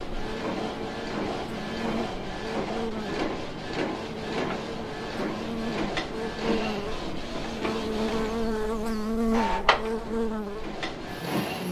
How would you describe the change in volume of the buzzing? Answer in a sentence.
The loudness of the buzzing goes up.